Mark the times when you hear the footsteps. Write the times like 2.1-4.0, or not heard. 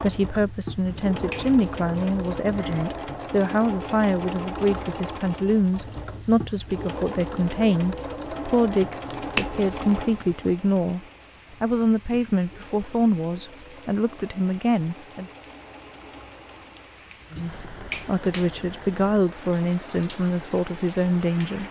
not heard.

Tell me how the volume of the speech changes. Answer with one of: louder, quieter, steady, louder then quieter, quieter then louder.
steady.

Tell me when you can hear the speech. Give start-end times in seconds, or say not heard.
0.0-15.3, 17.3-21.6.